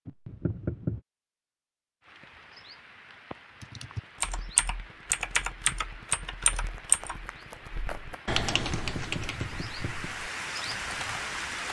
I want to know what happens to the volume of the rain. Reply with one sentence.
The volume of the rain goes up.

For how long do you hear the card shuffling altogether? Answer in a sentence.
The card shuffling can be heard for 2 seconds in total.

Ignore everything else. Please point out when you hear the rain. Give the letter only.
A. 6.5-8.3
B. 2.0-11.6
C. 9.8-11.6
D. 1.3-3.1
B.